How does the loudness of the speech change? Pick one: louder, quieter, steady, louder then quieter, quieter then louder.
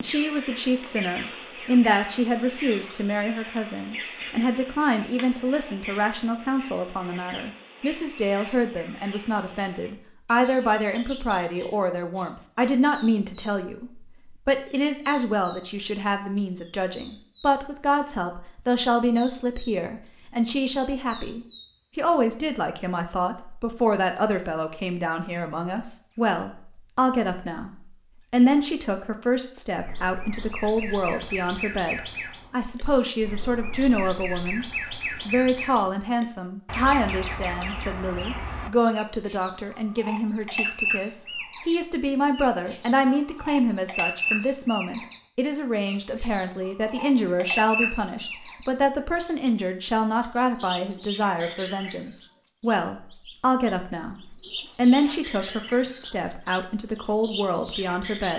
steady.